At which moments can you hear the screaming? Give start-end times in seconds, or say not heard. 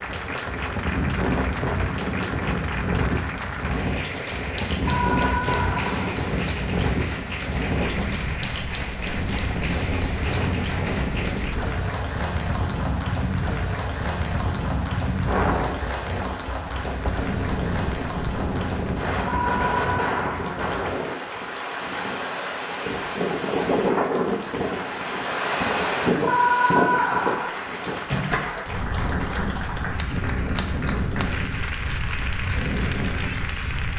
4.8-6.3, 19.2-20.6, 26.2-27.6.